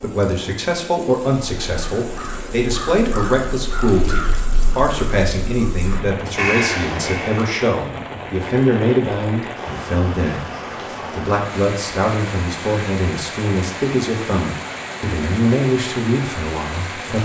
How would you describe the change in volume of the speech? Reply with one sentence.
The volume of the speech stays about the same.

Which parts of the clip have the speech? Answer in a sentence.
You can hear the speech from 0.0 to 17.2 s.